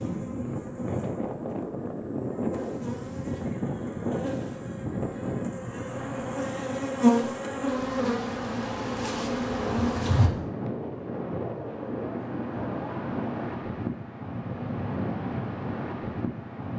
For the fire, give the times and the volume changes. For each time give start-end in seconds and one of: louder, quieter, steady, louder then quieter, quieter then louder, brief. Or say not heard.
not heard.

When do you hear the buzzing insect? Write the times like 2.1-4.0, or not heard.
0.0-10.3.